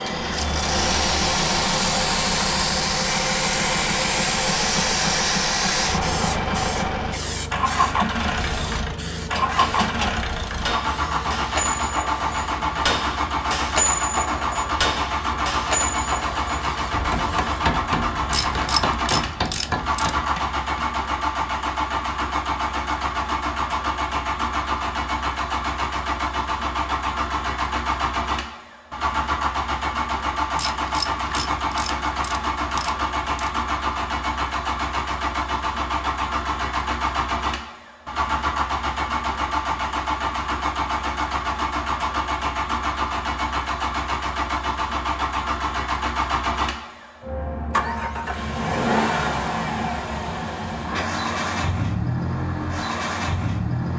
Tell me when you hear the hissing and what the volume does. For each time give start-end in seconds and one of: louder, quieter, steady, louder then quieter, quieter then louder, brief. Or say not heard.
0.0-17.8 quieter.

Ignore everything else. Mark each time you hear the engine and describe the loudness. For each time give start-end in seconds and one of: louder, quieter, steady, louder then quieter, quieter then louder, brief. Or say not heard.
0.0-53.9 steady.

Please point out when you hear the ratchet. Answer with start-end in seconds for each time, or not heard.
18.3-20.2, 30.6-33.5.